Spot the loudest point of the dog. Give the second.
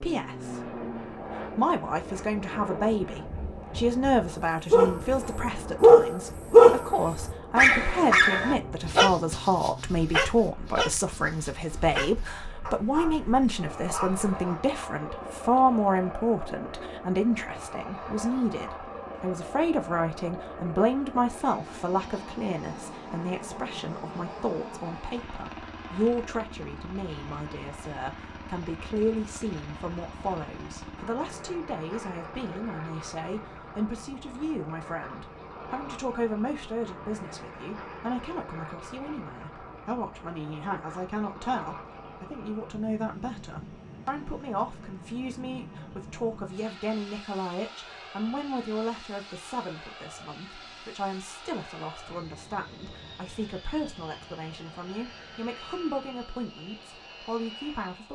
7 s.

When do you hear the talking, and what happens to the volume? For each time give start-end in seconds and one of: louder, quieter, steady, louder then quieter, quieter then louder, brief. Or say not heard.
0.0-0.6 brief
1.6-58.1 quieter.